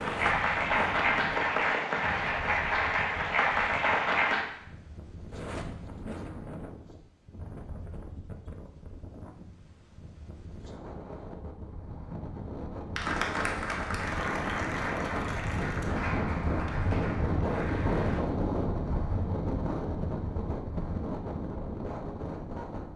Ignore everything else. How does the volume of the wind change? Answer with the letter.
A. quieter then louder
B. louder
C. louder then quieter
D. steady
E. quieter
B.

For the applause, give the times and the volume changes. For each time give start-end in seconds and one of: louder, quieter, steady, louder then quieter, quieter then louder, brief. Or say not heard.
0.0-4.5 steady
12.9-18.2 quieter.